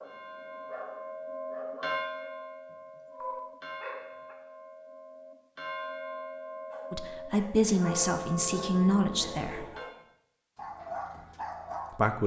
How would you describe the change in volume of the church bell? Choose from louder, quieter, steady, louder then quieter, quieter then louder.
quieter then louder.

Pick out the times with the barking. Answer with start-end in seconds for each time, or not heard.
0.0-4.3, 6.7-12.0.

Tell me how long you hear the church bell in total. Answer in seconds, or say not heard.
10 s.